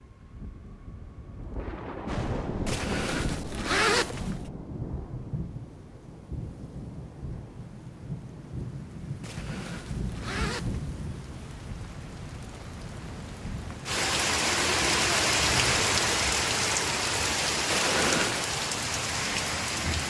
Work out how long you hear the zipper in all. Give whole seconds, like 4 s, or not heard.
4 s.